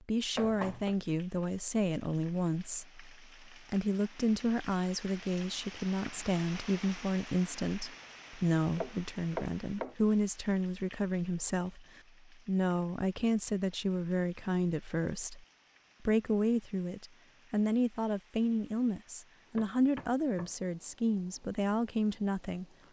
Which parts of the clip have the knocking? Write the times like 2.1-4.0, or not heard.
0.3-0.9, 8.8-9.9, 19.6-20.5.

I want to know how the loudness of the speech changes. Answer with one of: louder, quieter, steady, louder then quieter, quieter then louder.
steady.